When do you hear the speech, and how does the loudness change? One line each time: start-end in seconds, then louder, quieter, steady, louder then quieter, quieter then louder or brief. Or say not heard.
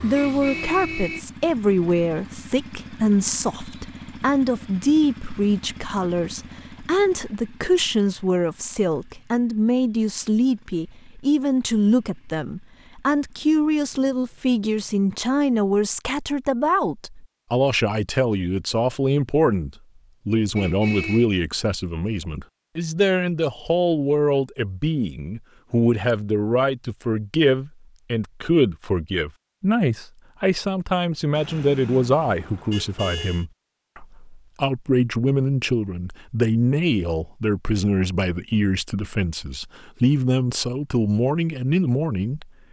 0.0-42.5 steady.